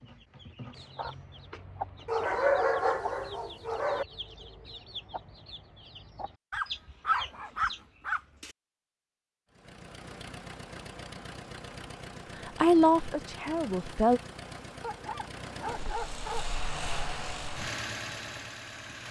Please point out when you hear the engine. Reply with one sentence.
The engine can be heard from 9.5 to 19.0 s.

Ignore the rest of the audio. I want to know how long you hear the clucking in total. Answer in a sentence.
The clucking can be heard for 8 seconds in total.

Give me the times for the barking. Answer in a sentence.
You can hear the barking from 2.0 to 4.0 s, from 6.5 to 8.5 s and from 14.8 to 16.4 s.